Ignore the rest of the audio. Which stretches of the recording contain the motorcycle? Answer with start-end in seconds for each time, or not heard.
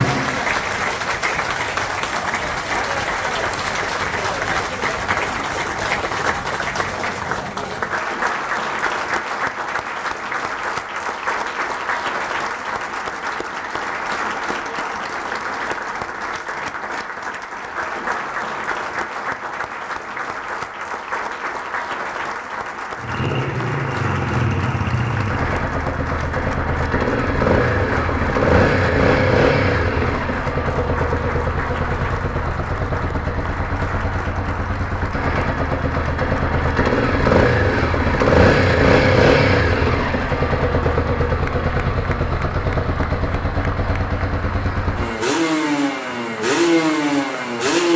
22.9-47.9.